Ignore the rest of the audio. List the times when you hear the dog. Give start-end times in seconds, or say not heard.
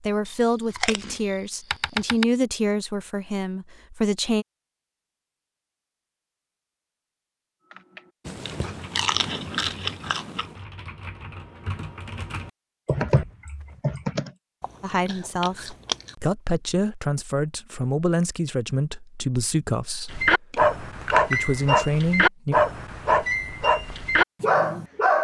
20.1-25.1.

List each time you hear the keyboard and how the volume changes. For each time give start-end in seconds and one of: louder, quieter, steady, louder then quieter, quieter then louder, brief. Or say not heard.
7.7-14.3 louder.